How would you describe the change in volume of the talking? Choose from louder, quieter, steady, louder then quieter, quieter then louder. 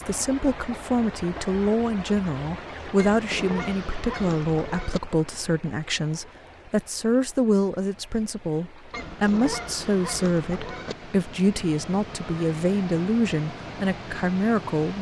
steady.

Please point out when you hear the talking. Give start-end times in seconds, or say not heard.
0.0-14.9.